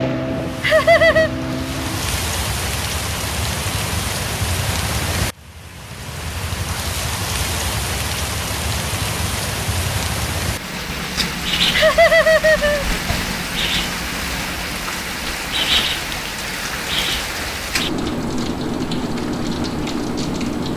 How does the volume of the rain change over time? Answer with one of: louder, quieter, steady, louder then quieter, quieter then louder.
steady.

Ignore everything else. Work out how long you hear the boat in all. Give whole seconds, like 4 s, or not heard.
2 s.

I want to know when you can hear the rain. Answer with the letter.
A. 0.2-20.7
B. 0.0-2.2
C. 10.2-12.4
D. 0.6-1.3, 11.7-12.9
A.